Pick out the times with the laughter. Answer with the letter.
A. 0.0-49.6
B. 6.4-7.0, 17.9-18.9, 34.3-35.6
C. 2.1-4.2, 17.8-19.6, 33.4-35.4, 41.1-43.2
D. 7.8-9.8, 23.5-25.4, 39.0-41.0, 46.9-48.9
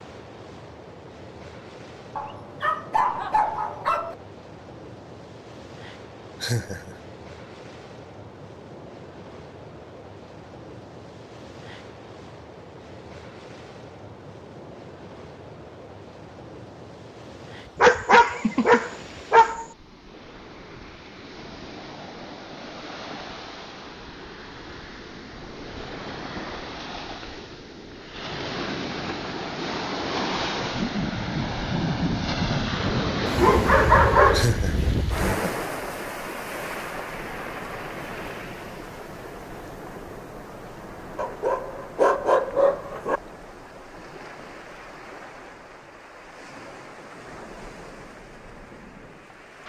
B.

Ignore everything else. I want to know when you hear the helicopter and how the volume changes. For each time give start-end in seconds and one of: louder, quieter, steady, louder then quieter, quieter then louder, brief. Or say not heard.
not heard.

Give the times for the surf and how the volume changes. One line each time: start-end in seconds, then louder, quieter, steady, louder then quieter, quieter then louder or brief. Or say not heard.
0.0-49.6 louder then quieter.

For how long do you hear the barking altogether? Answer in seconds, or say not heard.
8 s.